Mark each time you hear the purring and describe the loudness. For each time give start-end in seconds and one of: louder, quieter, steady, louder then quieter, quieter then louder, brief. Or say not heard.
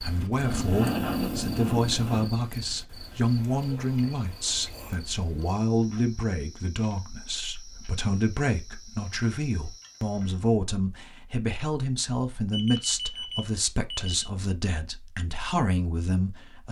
not heard.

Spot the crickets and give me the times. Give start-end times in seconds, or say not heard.
0.0-10.5.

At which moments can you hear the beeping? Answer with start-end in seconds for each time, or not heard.
12.5-14.3.